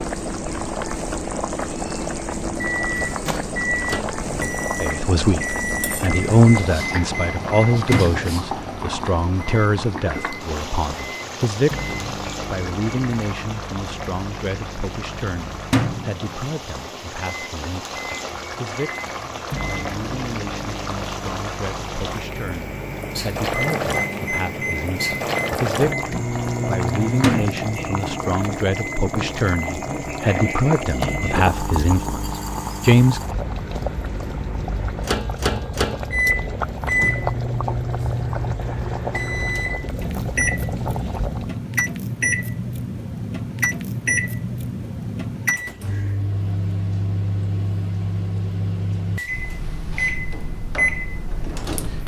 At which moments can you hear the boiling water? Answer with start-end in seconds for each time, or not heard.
0.0-41.6.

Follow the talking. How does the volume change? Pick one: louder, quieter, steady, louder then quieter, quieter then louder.
quieter then louder.